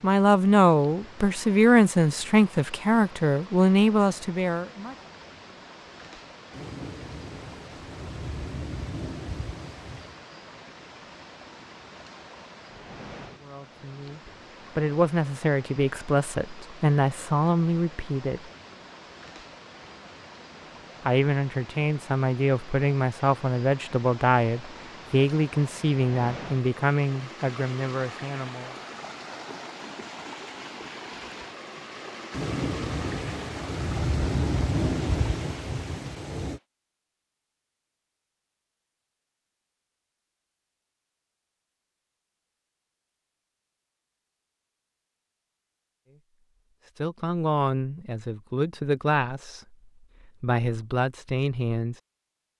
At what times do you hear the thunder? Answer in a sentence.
You can hear the thunder from 6.5 to 10.2 s and from 32.3 to 36.6 s.